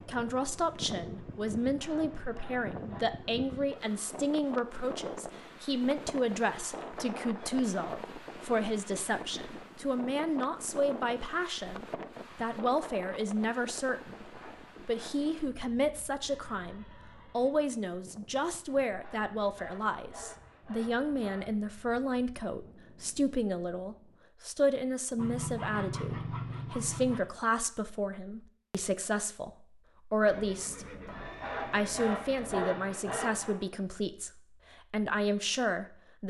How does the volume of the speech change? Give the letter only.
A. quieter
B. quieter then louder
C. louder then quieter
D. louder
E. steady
E.